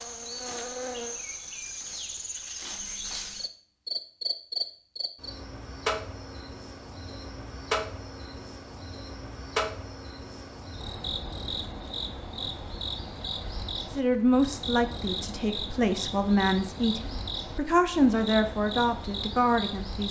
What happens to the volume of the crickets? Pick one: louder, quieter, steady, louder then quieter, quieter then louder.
steady.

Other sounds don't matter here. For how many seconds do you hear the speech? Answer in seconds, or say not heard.
6 s.